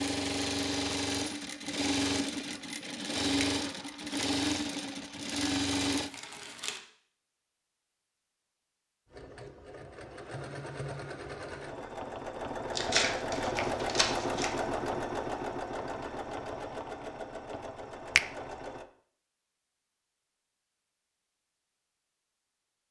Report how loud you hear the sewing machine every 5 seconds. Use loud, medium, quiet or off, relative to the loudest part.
loud, loud, loud, medium, off.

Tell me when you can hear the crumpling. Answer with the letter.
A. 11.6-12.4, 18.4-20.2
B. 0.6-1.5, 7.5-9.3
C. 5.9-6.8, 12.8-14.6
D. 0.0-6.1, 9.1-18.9
C.